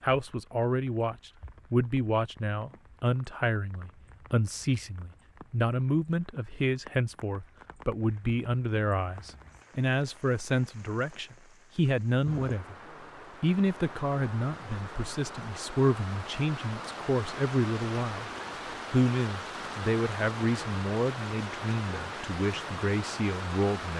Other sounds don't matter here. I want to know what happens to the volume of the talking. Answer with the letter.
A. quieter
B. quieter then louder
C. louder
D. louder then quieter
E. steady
E.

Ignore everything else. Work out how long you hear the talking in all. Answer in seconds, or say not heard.
23 s.